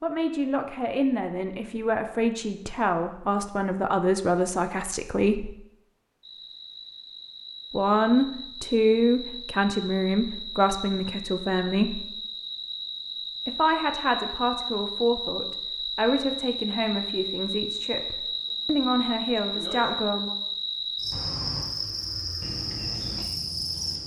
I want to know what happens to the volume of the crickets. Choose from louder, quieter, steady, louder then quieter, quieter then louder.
louder.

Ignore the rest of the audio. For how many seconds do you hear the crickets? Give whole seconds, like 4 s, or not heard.
18 s.